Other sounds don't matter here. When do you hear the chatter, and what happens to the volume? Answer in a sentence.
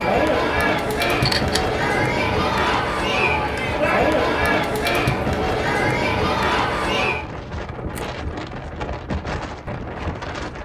You can hear the chatter from 0.0 to 7.2 s, at a steady volume.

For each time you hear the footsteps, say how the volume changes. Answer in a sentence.
You can't hear the footsteps here.